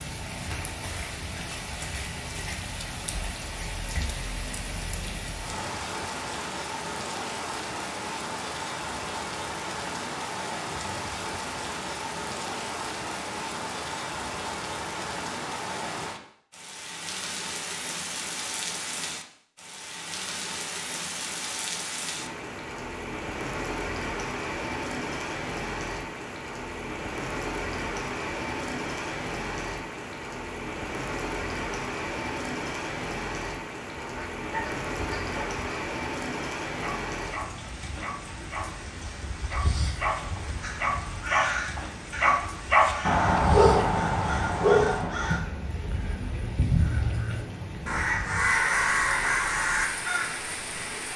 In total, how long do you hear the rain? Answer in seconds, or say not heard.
51 s.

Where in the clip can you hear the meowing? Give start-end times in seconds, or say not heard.
not heard.